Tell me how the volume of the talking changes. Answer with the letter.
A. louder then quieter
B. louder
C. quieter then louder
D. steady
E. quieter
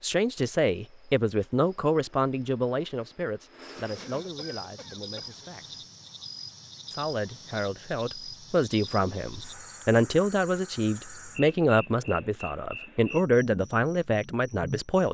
C.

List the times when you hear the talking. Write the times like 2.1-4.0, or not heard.
0.0-5.8, 6.9-15.0.